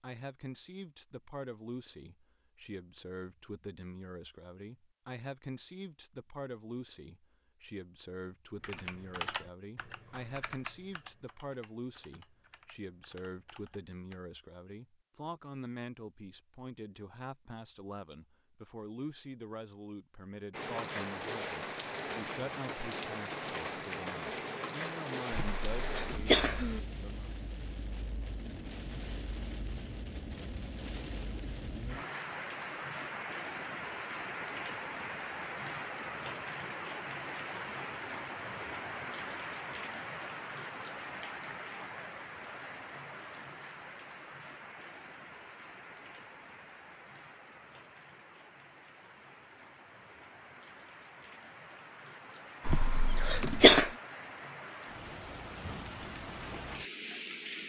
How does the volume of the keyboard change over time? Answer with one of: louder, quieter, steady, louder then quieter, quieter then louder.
quieter.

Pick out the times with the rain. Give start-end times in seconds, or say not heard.
20.5-57.6.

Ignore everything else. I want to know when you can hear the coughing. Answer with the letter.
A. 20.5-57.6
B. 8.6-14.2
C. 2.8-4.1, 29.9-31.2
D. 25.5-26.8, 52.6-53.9
D.